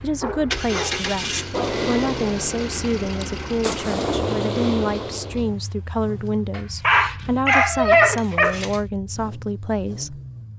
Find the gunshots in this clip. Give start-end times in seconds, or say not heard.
1.5-5.5.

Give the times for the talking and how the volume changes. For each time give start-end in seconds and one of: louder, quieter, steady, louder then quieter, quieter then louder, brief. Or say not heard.
0.0-10.2 steady.